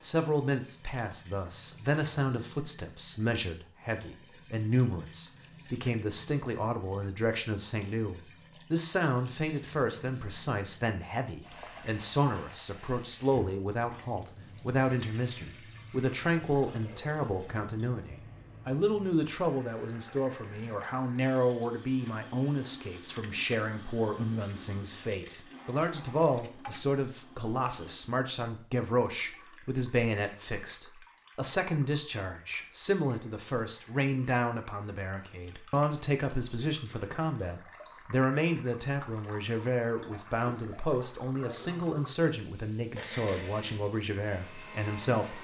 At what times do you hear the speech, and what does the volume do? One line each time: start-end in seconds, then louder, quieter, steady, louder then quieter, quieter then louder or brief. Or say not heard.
0.0-45.3 steady.